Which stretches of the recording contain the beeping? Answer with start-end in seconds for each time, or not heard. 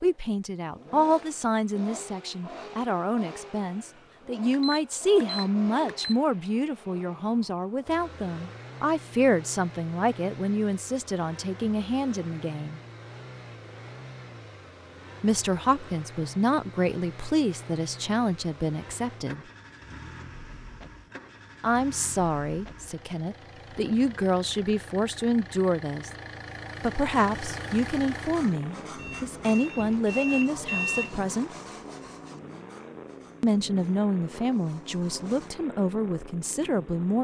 4.5-6.2, 28.9-31.2.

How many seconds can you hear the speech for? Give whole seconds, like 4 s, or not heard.
30 s.